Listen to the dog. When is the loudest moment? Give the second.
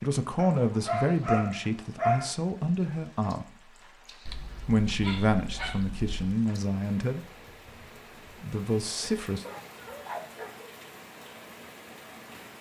2 s.